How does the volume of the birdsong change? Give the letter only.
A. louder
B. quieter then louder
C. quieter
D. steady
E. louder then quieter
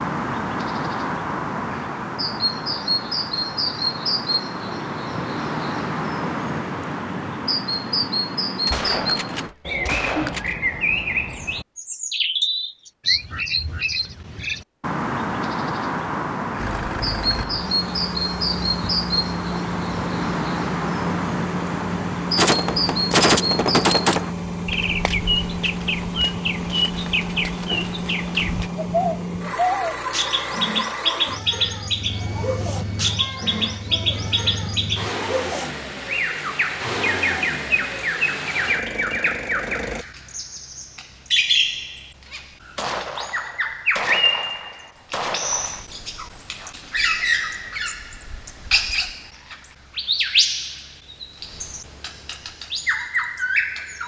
D.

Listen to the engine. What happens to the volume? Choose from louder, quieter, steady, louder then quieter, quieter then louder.
steady.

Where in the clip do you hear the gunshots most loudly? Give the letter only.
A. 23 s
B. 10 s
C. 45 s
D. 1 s
A.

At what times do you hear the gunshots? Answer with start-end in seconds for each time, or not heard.
8.7-10.6, 22.4-24.2, 42.8-45.9.